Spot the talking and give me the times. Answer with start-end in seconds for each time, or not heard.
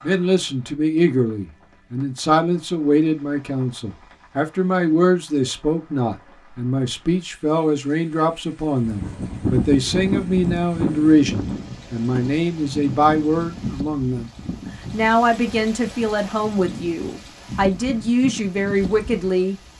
0.0-14.3, 14.9-19.6.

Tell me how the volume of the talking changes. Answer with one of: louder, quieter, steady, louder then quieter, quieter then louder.
steady.